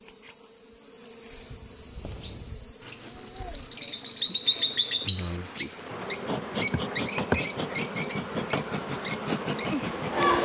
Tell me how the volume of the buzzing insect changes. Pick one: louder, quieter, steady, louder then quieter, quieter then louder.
louder.